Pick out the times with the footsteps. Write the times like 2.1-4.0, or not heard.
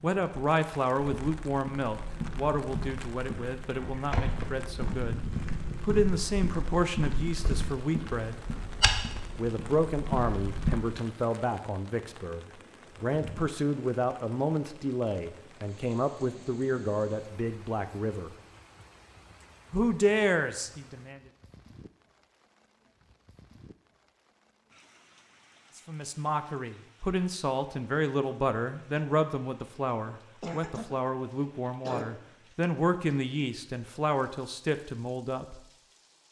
1.0-10.8.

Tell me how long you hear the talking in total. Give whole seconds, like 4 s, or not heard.
29 s.